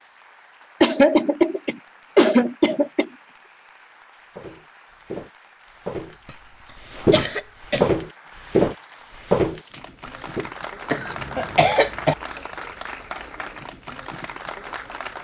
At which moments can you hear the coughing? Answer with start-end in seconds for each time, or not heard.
0.8-3.1, 7.1-7.9, 10.9-12.2.